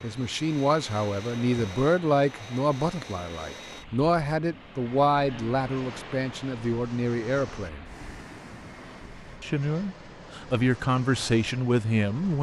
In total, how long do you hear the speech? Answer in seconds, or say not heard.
11 s.